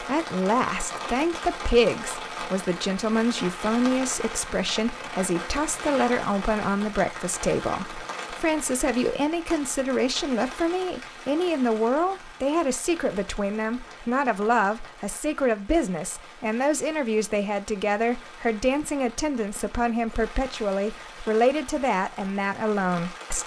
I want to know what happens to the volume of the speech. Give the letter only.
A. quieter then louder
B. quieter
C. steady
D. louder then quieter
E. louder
C.